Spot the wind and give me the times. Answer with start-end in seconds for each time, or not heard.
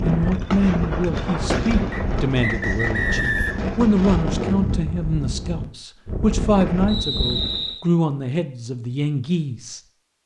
0.0-7.8.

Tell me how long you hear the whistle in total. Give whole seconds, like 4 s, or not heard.
3 s.